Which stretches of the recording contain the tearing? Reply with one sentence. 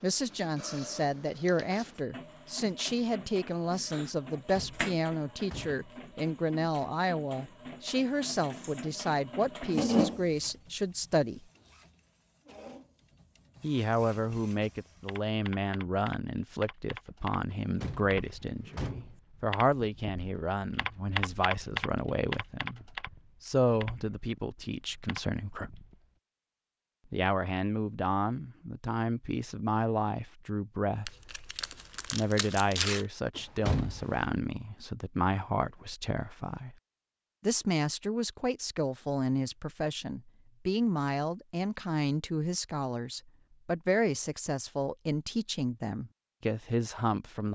The tearing can be heard from 31.1 to 33.0 s.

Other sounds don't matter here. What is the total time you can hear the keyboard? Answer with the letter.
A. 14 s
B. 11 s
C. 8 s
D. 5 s
B.